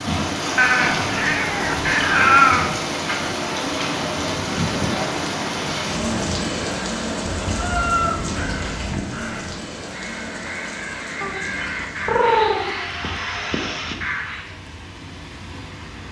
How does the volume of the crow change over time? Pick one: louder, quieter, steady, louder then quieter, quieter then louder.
louder.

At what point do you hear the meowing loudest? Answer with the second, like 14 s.
2 s.